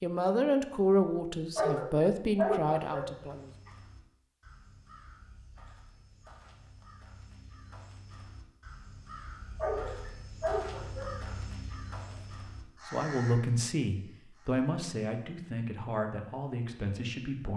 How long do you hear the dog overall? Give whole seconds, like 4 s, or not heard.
5 s.